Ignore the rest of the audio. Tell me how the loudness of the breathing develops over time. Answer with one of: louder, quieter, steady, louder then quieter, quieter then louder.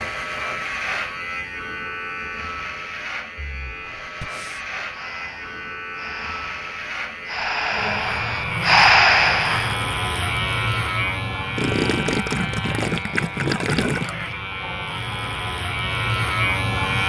louder.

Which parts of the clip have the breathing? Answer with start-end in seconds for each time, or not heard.
3.4-9.8.